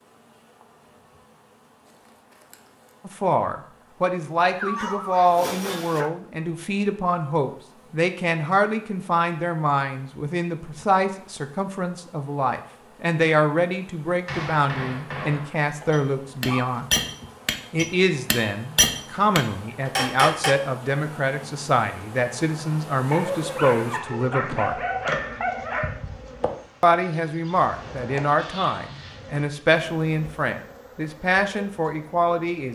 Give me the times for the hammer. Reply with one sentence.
You can hear the hammer from 14.2 to 20.6 s.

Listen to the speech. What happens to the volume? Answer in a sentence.
The loudness of the speech stays about the same.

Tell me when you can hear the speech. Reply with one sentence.
The speech can be heard from 3.0 to 16.9 s, from 17.7 to 24.8 s and from 26.8 to 32.7 s.